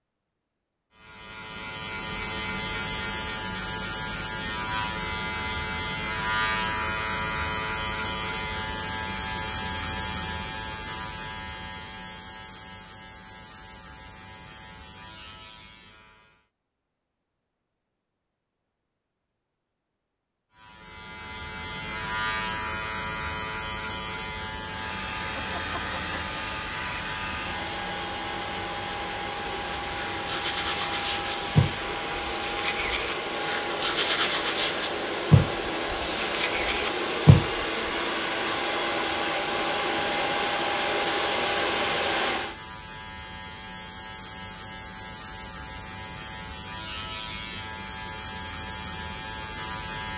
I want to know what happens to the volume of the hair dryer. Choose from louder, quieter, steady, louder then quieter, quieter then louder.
louder.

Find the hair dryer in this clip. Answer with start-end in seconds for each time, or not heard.
24.7-42.6.